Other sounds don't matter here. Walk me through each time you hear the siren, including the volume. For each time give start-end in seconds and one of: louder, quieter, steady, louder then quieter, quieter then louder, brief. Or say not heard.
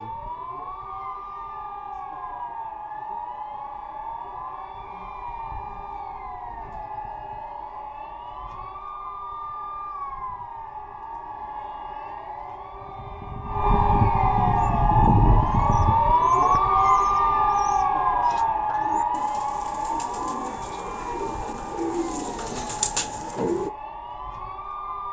0.0-25.0 louder then quieter.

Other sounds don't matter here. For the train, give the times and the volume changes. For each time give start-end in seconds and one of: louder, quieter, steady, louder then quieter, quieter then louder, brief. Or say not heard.
not heard.